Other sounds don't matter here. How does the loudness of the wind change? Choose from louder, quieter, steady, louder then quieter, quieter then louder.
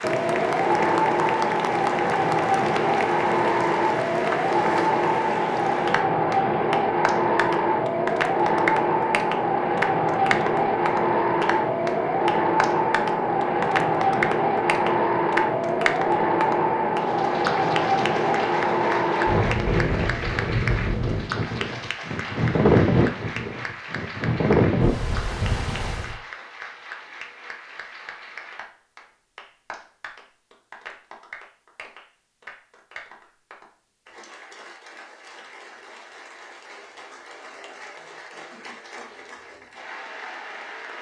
steady.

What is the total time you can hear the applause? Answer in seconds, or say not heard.
41 s.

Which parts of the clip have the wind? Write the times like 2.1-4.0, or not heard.
0.0-26.2.